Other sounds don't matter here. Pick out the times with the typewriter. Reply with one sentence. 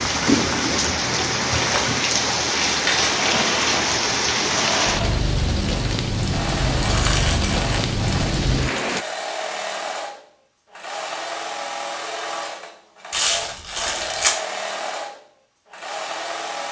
You can't hear the typewriter here.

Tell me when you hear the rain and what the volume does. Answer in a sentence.
The rain can be heard from 0.0 to 9.1 s, at a steady volume.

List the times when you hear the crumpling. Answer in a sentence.
You can hear the crumpling from 2.5 to 3.1 s, from 6.8 to 7.7 s and from 13.1 to 14.3 s.